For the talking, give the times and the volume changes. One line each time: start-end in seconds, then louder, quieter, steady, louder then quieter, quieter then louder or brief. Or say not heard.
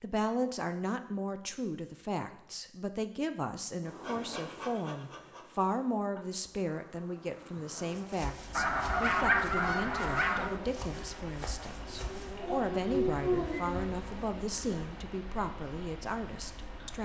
0.0-17.0 steady.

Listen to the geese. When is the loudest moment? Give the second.
9 s.